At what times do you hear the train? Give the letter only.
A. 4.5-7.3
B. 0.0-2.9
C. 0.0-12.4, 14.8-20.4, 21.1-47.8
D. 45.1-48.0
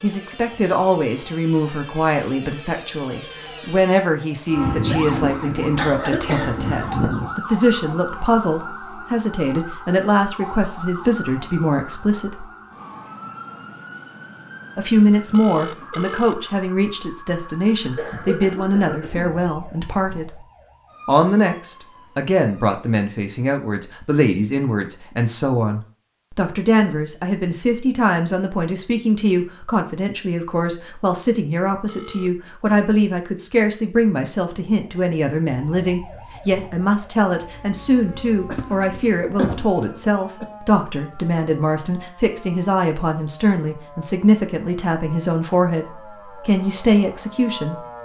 A.